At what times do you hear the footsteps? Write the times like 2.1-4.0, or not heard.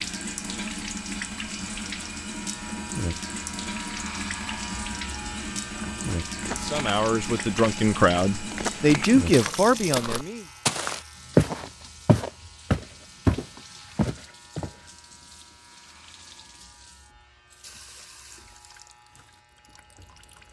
6.3-14.8.